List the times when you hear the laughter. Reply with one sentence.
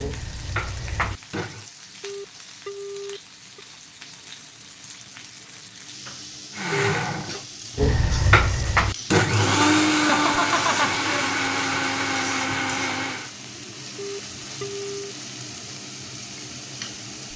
The laughter can be heard from 9.9 to 11.3 s.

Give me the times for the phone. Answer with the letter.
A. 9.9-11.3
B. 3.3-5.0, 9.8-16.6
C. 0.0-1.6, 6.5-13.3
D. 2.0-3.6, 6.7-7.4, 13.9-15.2
D.